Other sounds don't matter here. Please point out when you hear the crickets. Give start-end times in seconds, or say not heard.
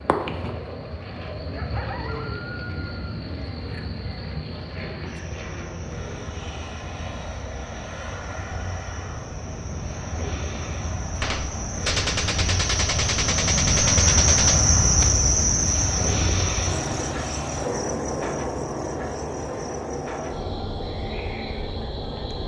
0.0-22.4.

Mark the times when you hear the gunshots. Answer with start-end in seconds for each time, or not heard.
11.2-15.1.